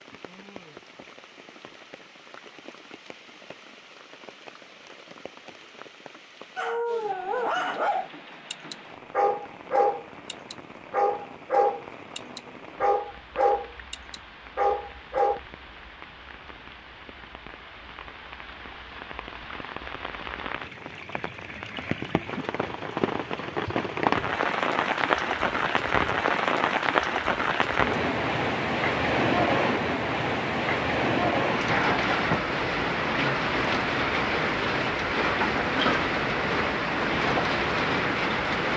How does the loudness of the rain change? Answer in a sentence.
The volume of the rain goes up.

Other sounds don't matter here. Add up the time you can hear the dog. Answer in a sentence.
The dog can be heard for 9 seconds in total.